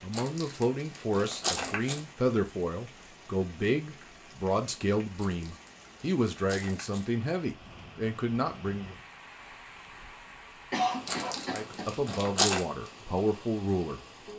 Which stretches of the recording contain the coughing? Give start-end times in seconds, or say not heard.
10.7-12.1.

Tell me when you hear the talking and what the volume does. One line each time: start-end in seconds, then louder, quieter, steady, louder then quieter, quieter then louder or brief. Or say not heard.
0.0-8.9 steady
11.5-14.0 brief.